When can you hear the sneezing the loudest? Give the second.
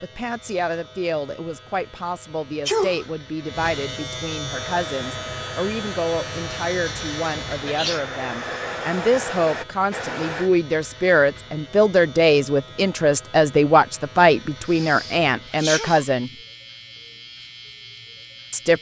3 s.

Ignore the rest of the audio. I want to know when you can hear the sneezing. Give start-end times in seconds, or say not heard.
2.6-3.1, 7.7-8.1, 14.7-16.1.